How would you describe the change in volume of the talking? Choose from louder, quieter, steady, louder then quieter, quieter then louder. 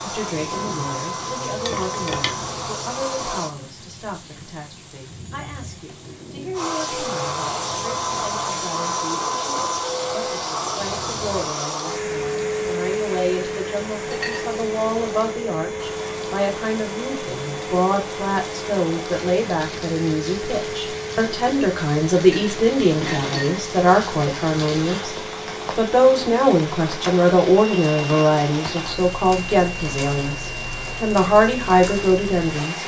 louder.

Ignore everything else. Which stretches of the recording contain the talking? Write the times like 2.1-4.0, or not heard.
0.0-25.1, 25.8-32.8.